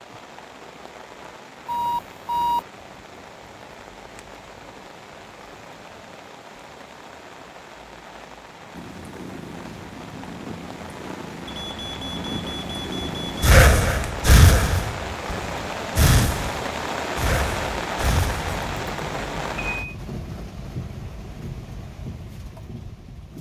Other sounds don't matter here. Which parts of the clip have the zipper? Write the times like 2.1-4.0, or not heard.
not heard.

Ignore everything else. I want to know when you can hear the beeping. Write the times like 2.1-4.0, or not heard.
1.6-2.6, 11.4-13.3, 18.6-19.9.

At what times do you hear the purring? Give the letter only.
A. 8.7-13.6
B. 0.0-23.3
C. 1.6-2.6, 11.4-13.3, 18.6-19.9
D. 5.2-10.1
A.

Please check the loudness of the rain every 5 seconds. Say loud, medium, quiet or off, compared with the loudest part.
quiet, quiet, medium, loud, medium.